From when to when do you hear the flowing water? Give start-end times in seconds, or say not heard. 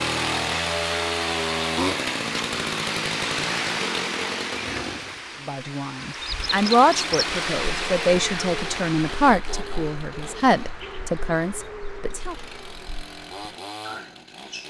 0.0-9.3.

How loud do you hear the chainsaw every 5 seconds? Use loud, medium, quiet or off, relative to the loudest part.
loud, medium, quiet.